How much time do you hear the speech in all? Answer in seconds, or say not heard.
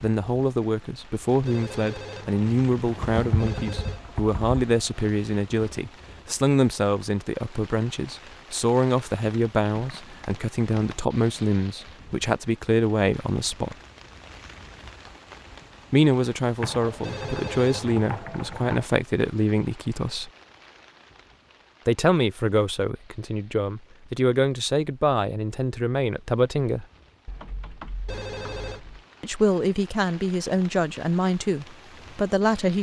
27 s.